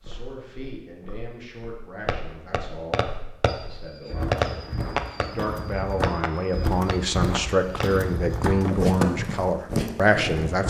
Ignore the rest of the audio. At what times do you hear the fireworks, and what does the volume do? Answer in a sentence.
You can hear the fireworks from 2.0 to 8.7 s, getting quieter.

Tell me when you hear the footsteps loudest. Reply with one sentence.
The volume of the footsteps peaks at 9 seconds.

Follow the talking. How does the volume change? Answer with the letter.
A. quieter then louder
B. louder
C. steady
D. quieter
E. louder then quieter
B.